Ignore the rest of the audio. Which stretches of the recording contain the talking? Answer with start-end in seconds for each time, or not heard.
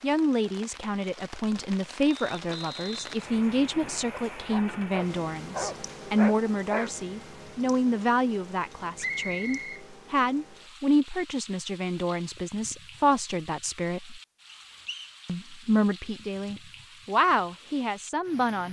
0.0-14.2, 15.2-18.6.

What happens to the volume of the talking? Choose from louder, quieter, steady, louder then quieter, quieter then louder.
steady.